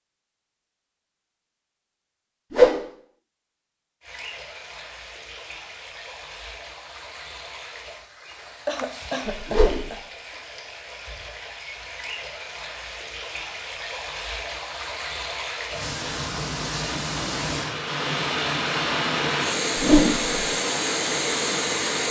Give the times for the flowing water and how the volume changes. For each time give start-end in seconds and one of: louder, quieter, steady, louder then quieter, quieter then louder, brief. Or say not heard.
4.0-22.0 louder.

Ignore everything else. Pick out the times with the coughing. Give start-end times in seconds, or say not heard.
8.3-10.0.